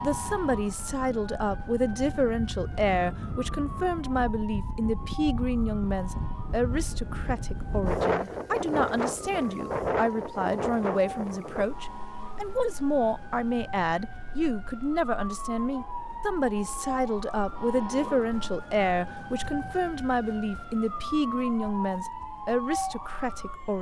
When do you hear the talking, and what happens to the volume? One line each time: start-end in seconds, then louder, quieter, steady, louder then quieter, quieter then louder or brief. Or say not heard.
0.0-23.7 steady.